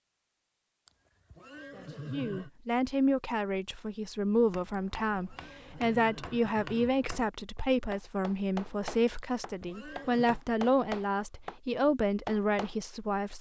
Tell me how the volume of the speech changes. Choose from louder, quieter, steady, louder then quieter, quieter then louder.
steady.